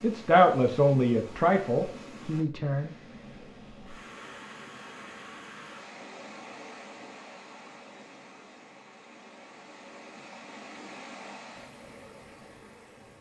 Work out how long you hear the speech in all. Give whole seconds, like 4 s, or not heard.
3 s.